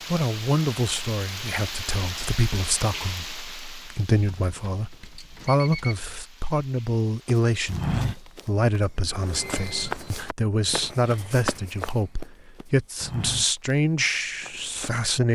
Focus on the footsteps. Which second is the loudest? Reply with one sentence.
The loudest moment of the footsteps is at 8 seconds.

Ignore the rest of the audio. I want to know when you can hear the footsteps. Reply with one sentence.
The footsteps can be heard from 7.2 to 15.0 s.